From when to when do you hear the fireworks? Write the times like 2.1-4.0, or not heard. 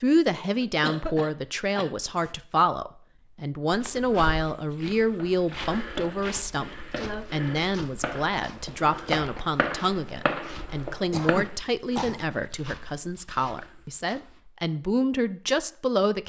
5.2-11.5.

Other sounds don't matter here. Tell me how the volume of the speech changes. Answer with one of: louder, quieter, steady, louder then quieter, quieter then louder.
steady.